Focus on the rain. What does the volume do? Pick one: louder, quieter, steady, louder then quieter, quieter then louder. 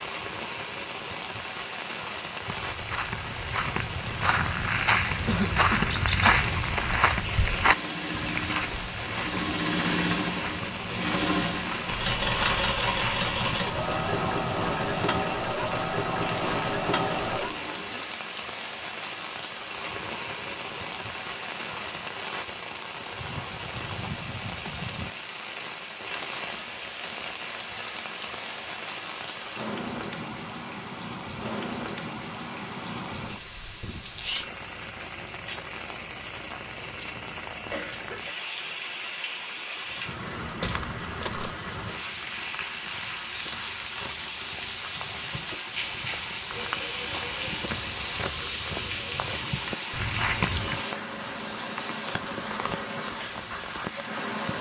steady.